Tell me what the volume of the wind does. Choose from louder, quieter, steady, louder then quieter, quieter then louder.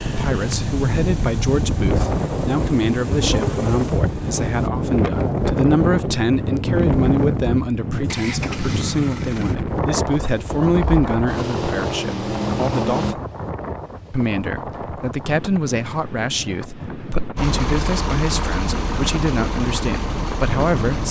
quieter.